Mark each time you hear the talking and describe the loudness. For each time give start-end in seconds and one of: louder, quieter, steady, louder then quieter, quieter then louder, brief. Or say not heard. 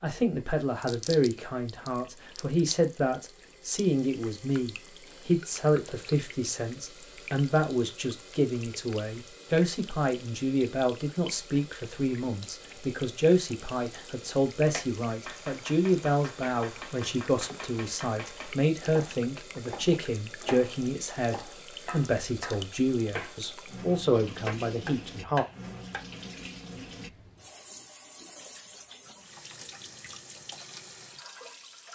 0.0-25.4 steady.